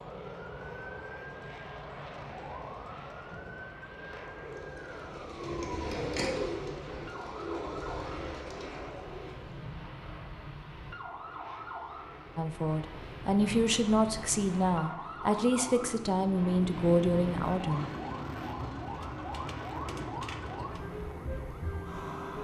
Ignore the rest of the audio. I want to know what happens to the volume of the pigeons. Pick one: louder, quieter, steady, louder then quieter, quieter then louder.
louder then quieter.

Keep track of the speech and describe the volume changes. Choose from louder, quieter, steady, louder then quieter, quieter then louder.
steady.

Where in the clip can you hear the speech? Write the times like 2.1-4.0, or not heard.
12.3-17.9.